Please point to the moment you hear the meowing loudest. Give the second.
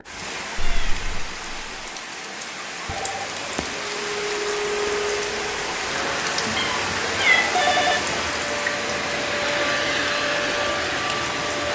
7 s.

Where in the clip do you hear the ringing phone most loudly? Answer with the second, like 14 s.
8 s.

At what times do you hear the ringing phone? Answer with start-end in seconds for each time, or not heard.
2.9-3.9, 7.3-8.0.